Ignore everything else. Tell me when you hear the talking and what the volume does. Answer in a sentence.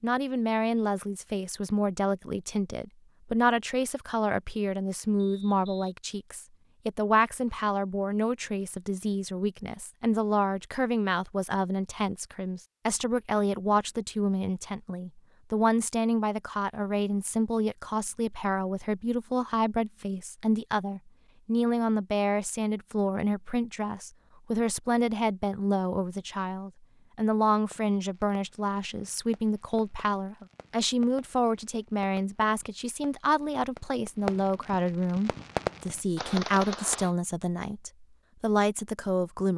You can hear the talking from 0.0 to 39.5 s, at a steady volume.